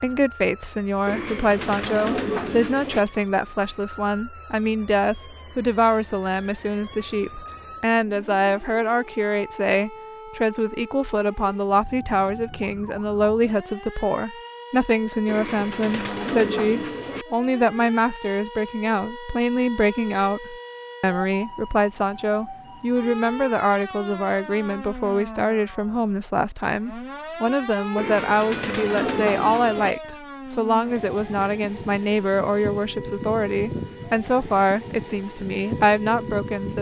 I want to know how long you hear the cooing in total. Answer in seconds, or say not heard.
6 s.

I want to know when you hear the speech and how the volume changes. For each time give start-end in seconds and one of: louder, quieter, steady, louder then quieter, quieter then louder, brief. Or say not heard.
0.0-36.7 steady.